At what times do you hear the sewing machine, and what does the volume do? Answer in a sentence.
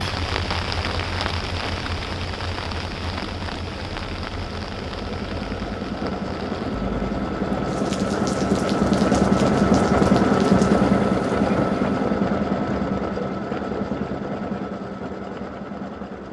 The sewing machine can be heard from 0.0 to 16.2 s, getting louder then quieter.